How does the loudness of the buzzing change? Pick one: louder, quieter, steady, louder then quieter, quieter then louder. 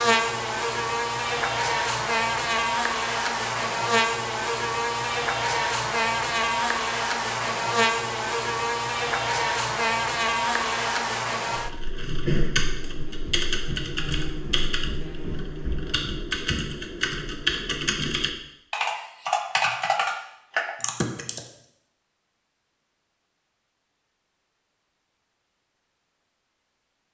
quieter.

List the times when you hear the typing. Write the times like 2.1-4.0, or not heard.
11.5-21.4.